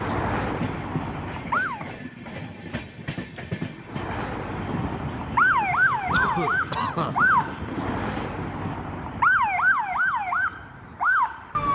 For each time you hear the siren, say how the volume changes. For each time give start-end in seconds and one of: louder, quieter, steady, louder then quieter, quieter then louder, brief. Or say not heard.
0.0-1.9 brief
3.9-11.7 steady.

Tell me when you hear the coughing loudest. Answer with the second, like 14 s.
7 s.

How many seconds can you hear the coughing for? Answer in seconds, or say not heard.
2 s.